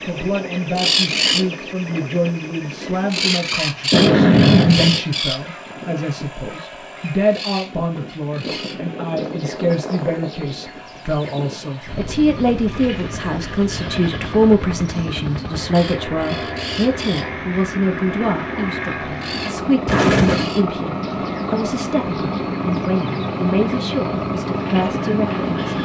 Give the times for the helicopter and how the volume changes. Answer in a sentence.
The helicopter can be heard from 0.0 to 25.8 s, getting louder.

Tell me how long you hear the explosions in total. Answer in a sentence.
You can hear the explosions for 2 seconds altogether.